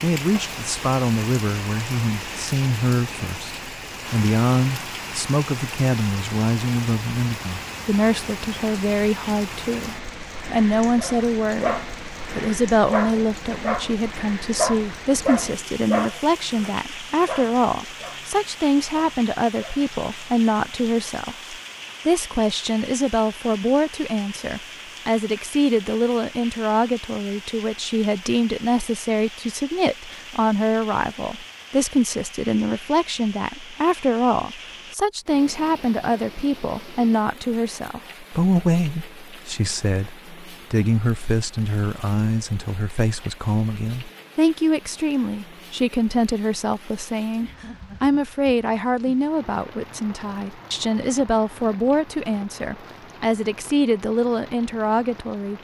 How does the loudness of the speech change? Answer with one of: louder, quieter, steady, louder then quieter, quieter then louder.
steady.